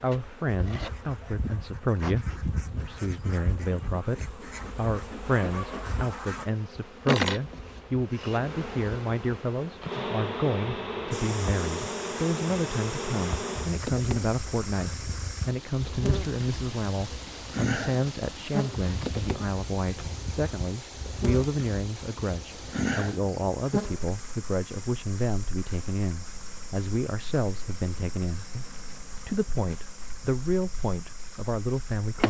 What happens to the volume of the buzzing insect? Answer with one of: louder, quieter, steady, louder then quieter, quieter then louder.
louder then quieter.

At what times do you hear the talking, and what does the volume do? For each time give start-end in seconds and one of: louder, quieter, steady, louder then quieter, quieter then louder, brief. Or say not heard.
0.0-32.2 steady.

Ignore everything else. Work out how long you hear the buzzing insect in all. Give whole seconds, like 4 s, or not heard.
32 s.